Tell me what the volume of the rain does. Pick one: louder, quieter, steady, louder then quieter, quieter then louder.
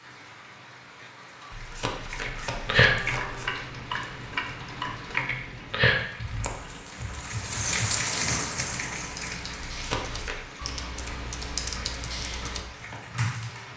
louder then quieter.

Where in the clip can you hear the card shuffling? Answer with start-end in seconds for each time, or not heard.
1.5-3.5, 9.7-10.4.